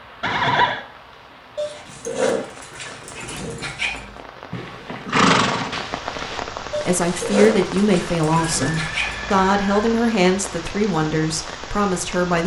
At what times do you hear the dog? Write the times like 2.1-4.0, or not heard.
1.6-4.2, 6.7-9.3.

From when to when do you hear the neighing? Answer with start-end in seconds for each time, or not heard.
0.2-0.8, 4.5-6.4, 8.6-9.9.